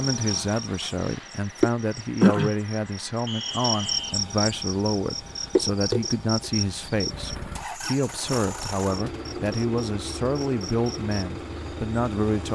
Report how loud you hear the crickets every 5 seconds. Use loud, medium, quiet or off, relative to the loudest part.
loud, medium, quiet.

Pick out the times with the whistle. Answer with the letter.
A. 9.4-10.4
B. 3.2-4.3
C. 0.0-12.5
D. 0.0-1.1
B.